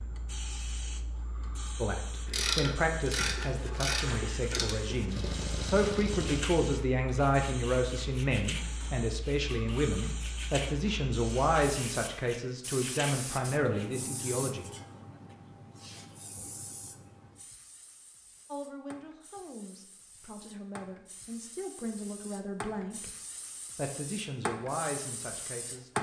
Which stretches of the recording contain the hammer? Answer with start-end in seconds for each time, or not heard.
not heard.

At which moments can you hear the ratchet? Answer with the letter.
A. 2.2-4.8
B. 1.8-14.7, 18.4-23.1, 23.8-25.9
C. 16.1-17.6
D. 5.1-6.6
A.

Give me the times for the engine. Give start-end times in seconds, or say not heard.
5.1-6.6.